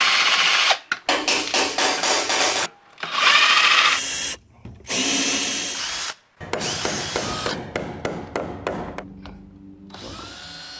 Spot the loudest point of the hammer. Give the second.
2 s.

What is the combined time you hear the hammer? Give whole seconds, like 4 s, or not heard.
4 s.